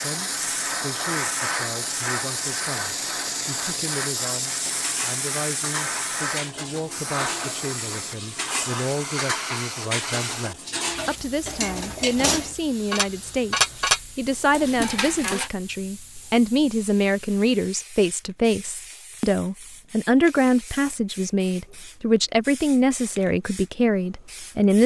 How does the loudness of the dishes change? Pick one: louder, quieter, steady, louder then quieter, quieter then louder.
louder.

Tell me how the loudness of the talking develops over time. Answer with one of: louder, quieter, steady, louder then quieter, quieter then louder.
louder.